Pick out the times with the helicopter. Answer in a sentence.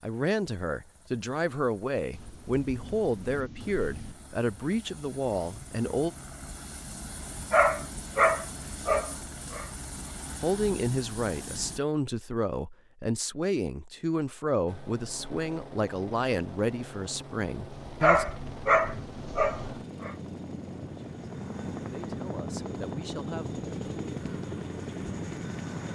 You can hear the helicopter from 0.0 to 11.8 s and from 14.7 to 25.9 s.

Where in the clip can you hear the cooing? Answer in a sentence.
The cooing can't be heard in this clip.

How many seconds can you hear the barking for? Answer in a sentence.
You can hear the barking for 4 seconds altogether.